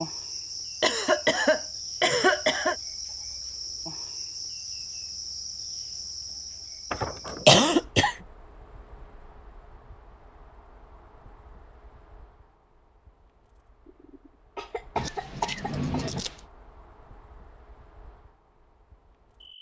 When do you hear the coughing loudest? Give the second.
8 s.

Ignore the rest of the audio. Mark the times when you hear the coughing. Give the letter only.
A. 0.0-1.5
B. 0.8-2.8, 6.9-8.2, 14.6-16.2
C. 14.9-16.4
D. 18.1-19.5
B.